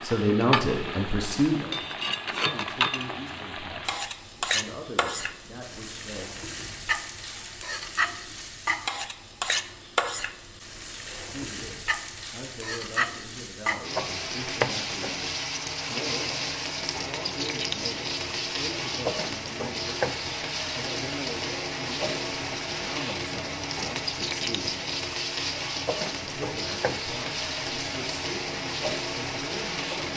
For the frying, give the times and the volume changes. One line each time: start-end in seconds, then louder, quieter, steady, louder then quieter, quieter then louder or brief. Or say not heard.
0.0-30.1 steady.